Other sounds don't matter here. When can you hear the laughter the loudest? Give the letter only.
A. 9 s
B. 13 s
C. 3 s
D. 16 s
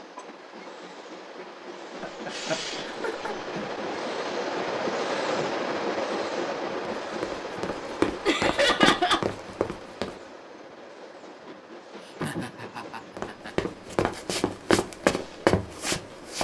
A.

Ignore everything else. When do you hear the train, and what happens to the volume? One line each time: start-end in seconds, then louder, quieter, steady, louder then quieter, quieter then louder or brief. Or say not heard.
0.0-16.4 louder then quieter.